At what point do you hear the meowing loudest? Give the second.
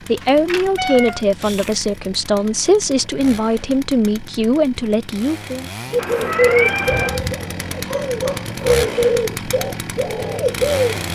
7 s.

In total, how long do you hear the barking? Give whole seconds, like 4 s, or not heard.
2 s.